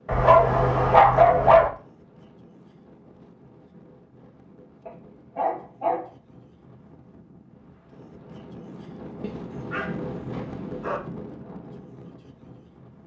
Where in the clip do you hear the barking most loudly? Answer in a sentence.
The loudest moment of the barking is at 1 second.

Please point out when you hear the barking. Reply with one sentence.
The barking can be heard from 0.1 to 1.7 s, from 4.8 to 6.0 s and from 9.2 to 11.0 s.